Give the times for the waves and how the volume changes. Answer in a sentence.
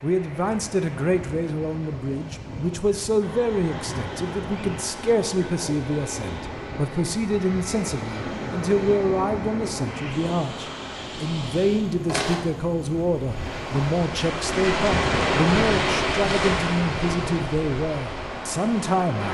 You can hear the waves from 0.0 to 19.3 s, getting louder.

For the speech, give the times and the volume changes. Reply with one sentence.
The speech can be heard from 0.0 to 19.3 s, at a steady volume.